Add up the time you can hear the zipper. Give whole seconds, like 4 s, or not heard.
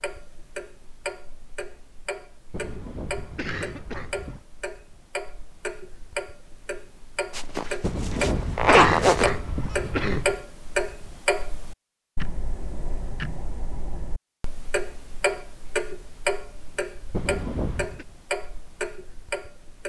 2 s.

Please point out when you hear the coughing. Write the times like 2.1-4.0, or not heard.
2.5-4.5, 7.8-10.4, 17.1-18.1.